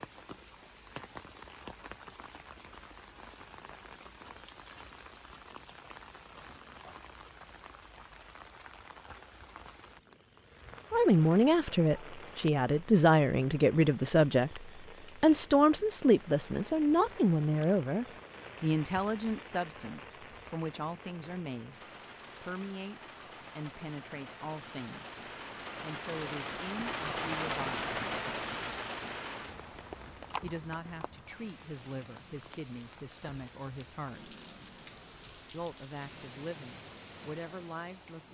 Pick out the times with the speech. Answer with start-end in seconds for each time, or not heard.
10.9-27.9, 30.4-34.4, 35.5-38.3.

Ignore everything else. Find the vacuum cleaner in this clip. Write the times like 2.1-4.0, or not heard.
not heard.